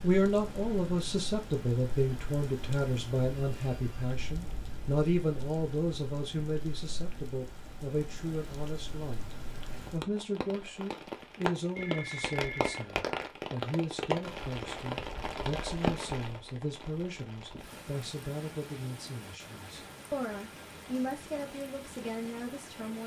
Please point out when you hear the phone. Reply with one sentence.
You can hear the phone from 3.4 to 4.1 s and from 11.8 to 13.2 s.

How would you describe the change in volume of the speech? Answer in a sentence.
The loudness of the speech goes down.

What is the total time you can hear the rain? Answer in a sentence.
The rain can be heard for 23 seconds in total.